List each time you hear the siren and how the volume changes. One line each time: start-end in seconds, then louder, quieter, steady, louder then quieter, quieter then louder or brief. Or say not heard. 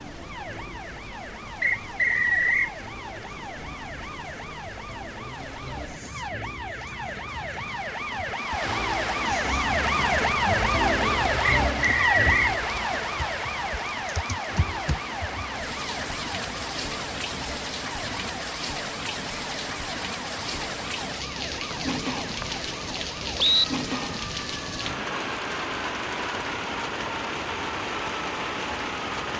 0.0-29.2 louder then quieter.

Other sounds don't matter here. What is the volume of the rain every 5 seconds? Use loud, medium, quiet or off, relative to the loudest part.
quiet, medium, loud, loud, loud, loud.